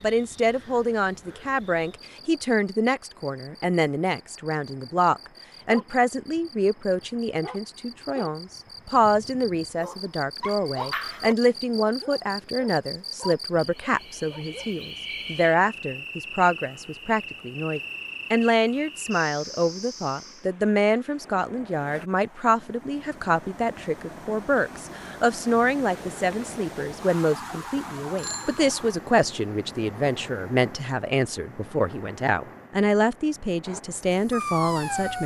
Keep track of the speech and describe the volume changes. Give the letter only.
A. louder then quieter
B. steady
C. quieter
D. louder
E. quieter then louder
B.